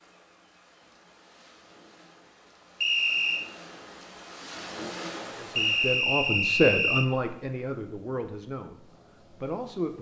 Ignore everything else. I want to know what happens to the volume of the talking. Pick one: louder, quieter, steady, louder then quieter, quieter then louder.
louder then quieter.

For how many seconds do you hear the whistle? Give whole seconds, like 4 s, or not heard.
2 s.